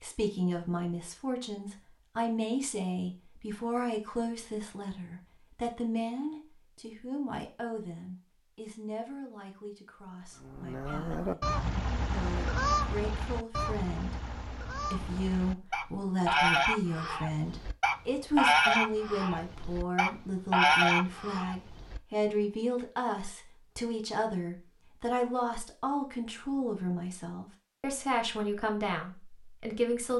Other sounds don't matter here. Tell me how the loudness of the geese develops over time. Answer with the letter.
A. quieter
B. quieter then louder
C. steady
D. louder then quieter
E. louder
B.